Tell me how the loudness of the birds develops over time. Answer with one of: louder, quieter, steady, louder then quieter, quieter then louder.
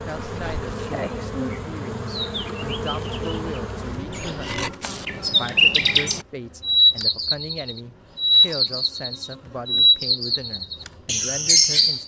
louder.